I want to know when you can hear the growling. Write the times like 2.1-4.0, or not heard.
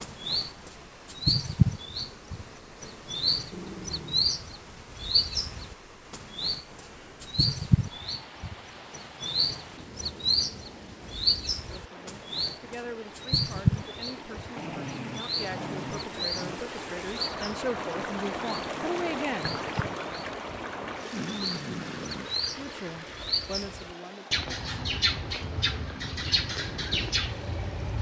3.5-4.3, 14.6-16.6, 21.1-22.3.